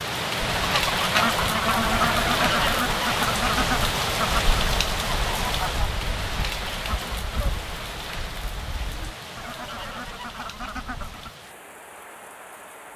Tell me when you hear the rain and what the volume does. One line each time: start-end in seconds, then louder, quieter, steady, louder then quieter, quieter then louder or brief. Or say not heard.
0.0-12.9 quieter.